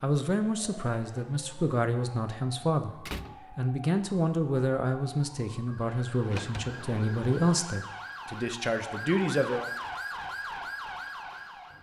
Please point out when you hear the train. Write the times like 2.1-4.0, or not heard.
not heard.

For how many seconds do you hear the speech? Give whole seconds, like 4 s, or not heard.
10 s.